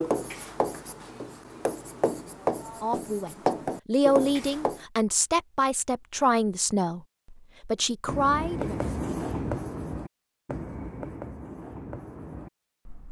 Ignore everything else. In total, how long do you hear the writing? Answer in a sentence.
The writing can be heard for 10 seconds in total.